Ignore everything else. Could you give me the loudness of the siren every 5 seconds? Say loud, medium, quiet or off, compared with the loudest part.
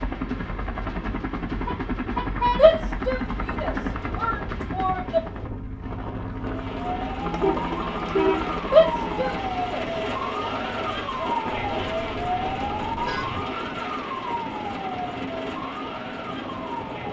off, loud, loud, medium.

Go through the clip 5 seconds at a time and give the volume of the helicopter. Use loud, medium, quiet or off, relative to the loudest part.
loud, loud, medium, medium.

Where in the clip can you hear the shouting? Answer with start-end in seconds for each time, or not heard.
2.5-5.2, 8.7-9.8.